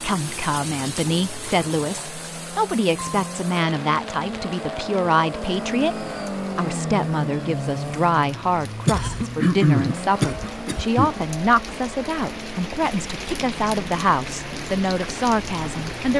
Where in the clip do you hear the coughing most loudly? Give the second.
10 s.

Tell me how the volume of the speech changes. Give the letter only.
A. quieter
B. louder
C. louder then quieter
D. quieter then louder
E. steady
E.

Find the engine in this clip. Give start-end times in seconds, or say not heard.
0.0-16.1.